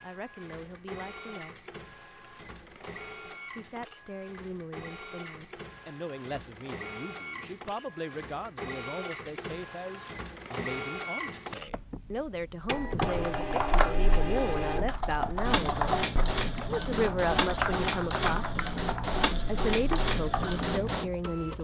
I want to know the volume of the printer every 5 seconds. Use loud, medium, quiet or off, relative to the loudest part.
quiet, medium, loud, loud, loud.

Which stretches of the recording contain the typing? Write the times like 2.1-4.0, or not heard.
12.9-20.7.